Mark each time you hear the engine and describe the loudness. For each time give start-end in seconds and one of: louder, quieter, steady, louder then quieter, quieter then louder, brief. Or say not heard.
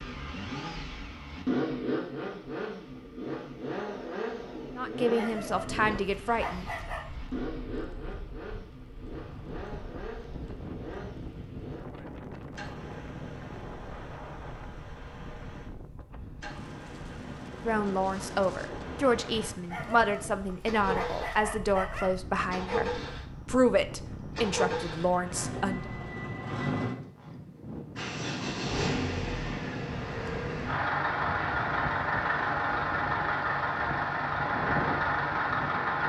0.0-36.0 quieter then louder.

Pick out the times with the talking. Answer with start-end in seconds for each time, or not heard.
4.8-6.7, 17.6-25.9.